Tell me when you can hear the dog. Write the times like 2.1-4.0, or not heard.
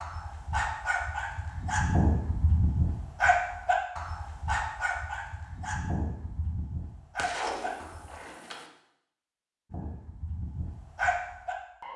0.0-8.2, 9.7-11.9.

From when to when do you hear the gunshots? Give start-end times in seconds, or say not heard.
7.2-8.7.